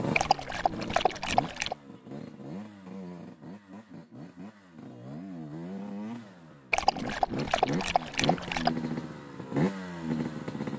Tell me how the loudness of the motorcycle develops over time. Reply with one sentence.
The volume of the motorcycle goes up.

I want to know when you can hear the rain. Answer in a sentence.
You can't hear the rain here.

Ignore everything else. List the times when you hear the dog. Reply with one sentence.
The dog can be heard from 0.1 to 1.8 s and from 6.7 to 8.7 s.